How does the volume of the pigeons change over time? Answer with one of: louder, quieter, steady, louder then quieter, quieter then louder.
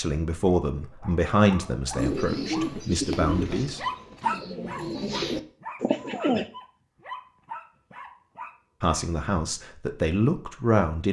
quieter then louder.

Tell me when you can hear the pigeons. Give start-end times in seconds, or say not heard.
1.9-6.5.